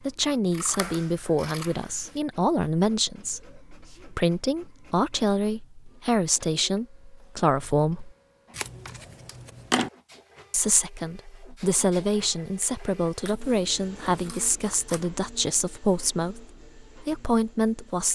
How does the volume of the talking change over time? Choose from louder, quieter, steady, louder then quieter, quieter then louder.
steady.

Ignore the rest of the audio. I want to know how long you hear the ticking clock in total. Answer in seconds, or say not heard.
not heard.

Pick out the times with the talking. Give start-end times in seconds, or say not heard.
0.0-8.1, 10.5-18.0.